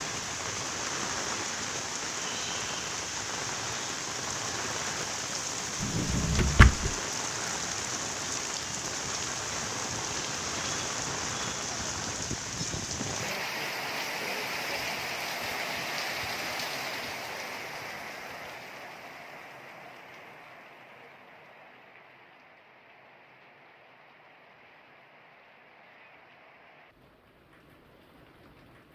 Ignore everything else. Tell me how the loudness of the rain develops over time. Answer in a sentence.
The volume of the rain goes down.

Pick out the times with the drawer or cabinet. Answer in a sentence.
The drawer or cabinet can be heard from 5.8 to 7.0 s.